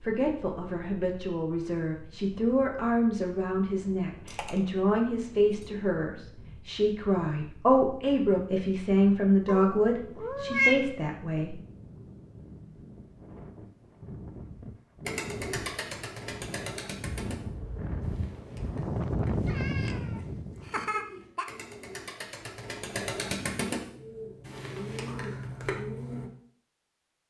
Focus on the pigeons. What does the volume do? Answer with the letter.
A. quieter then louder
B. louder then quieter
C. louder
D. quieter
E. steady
A.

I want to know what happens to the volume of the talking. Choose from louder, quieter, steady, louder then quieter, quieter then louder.
louder.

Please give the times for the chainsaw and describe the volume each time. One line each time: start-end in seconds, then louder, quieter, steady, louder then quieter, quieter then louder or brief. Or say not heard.
not heard.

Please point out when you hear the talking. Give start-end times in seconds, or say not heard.
0.0-11.6.